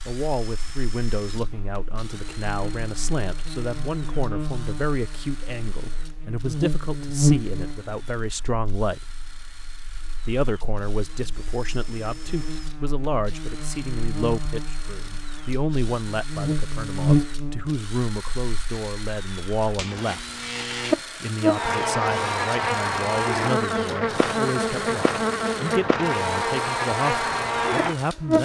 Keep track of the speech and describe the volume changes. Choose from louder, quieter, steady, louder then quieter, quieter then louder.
steady.